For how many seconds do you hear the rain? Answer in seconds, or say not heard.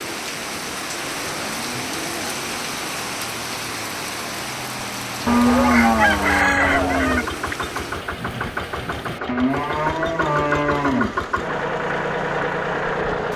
13 s.